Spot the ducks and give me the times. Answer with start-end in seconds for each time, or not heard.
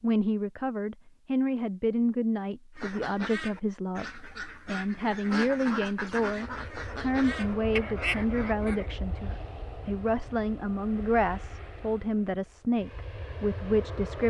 2.8-8.9.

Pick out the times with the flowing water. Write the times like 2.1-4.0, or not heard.
not heard.